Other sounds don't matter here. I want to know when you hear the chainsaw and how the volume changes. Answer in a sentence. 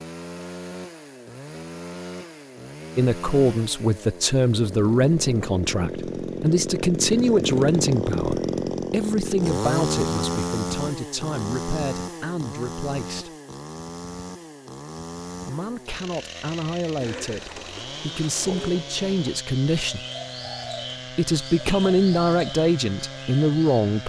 You can hear the chainsaw from 0.0 to 24.0 s, getting louder then quieter.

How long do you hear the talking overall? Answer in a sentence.
You can hear the talking for 18 seconds altogether.